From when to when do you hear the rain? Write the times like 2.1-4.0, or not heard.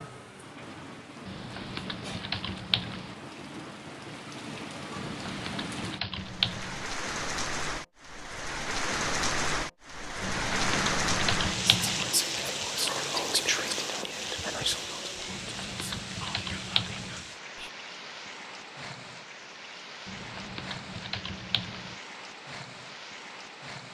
0.0-23.8.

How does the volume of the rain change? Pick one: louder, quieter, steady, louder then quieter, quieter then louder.
louder then quieter.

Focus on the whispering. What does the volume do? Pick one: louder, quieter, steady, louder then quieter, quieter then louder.
quieter.